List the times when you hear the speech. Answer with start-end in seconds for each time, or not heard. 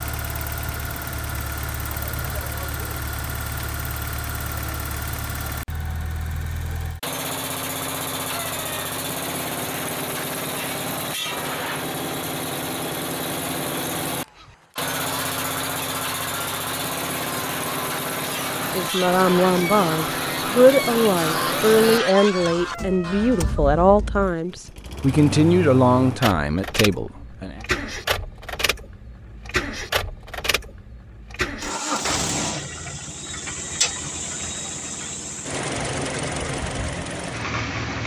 18.6-27.6.